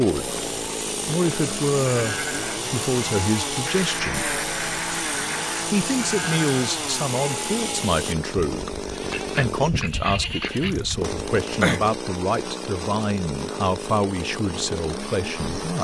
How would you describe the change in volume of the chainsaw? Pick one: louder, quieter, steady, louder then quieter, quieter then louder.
steady.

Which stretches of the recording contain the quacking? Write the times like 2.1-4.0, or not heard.
3.6-5.7, 9.1-10.8.